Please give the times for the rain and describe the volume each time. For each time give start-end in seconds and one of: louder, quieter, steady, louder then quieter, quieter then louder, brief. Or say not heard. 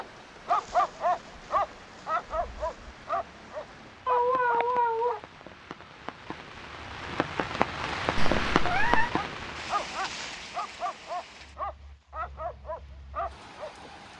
0.0-14.1 louder then quieter.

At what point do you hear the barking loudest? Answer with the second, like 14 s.
1 s.